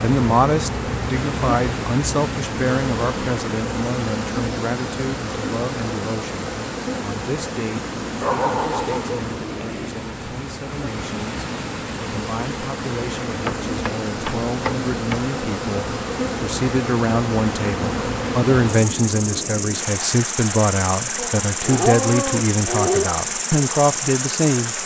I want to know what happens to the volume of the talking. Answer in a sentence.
The loudness of the talking goes down, then up.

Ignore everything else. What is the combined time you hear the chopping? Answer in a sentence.
You can hear the chopping for 2 seconds altogether.